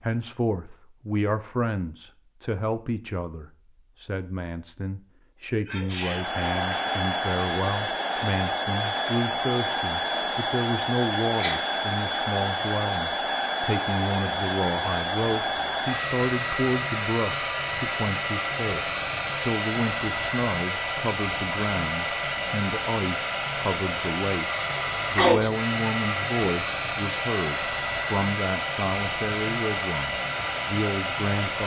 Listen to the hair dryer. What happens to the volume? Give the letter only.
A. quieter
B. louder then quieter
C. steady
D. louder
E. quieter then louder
C.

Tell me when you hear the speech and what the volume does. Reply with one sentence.
You can hear the speech from 0.0 to 31.6 s, at a steady volume.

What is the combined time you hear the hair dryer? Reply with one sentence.
You can hear the hair dryer for 26 seconds altogether.